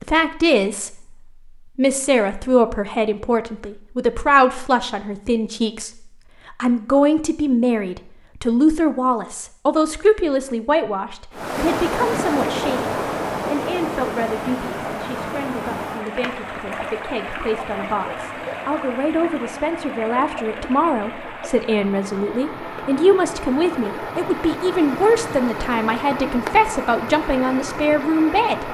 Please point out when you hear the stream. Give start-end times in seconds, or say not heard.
11.3-28.7.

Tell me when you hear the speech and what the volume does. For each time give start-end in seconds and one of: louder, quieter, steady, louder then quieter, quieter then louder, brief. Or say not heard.
0.0-1.1 brief
1.8-28.7 quieter then louder.